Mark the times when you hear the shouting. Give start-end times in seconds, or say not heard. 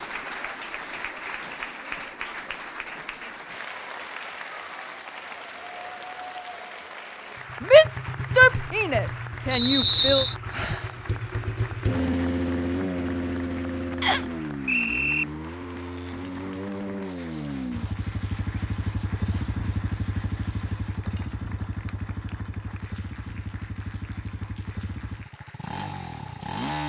7.6-10.2.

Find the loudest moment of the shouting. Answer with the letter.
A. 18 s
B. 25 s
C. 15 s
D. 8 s
D.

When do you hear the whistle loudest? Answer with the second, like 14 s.
10 s.